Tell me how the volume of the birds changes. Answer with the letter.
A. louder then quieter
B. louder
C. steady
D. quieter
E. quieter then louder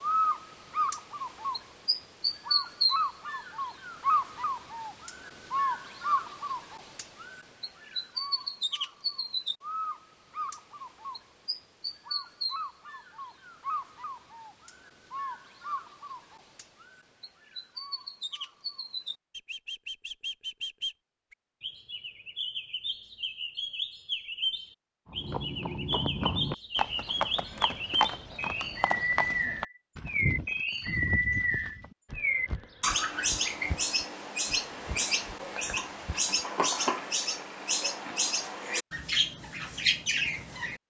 E.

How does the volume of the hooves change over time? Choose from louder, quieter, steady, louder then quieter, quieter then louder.
quieter.